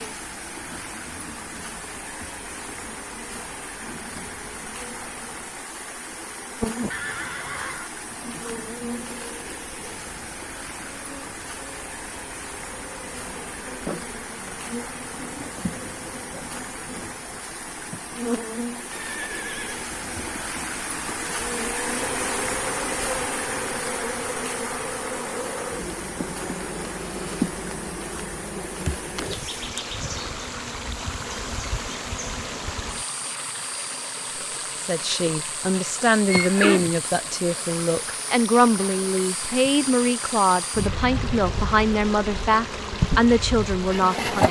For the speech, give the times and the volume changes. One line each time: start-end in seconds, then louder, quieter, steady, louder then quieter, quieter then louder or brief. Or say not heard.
34.8-44.4 steady.